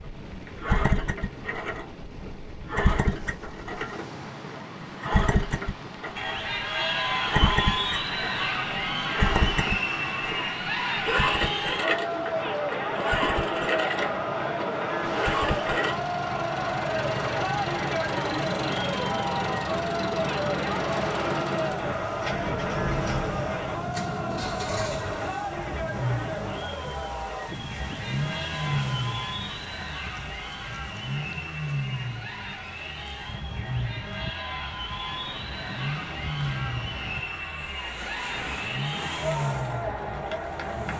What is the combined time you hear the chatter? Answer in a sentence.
The chatter can be heard for 35 seconds in total.